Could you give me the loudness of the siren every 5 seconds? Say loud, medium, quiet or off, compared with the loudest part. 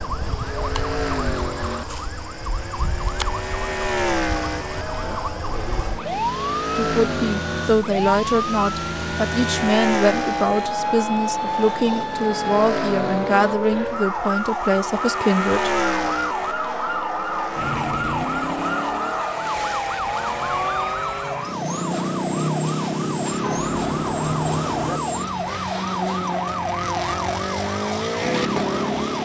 medium, loud, loud, loud, loud, loud.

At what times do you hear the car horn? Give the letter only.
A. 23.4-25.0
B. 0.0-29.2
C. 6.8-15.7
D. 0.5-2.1
A.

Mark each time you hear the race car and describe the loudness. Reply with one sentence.
The race car can be heard from 0.0 to 29.2 s, at a steady volume.